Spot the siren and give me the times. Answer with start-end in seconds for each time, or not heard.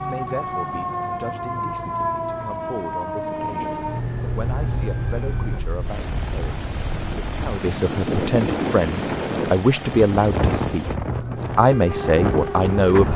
0.0-5.6, 11.1-12.8.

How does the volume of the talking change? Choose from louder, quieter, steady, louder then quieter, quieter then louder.
louder.